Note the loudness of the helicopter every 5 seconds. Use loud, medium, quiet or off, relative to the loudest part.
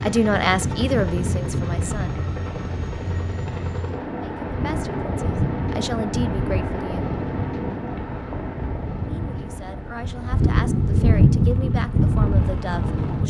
loud, loud, medium.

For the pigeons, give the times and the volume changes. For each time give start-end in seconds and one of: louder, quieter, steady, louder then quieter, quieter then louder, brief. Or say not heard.
not heard.